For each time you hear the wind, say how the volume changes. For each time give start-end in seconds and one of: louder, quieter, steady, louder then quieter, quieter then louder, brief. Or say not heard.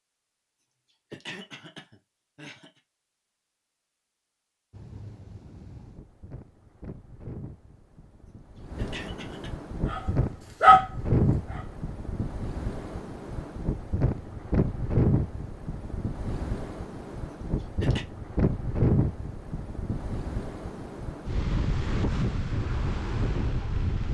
4.7-24.0 louder.